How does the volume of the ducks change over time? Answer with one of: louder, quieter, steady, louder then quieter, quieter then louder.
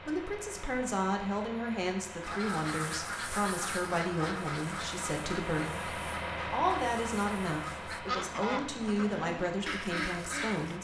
quieter then louder.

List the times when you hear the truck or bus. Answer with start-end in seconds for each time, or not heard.
0.0-10.8.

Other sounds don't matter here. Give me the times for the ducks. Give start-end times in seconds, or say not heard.
2.2-10.8.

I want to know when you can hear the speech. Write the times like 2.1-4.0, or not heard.
0.1-10.8.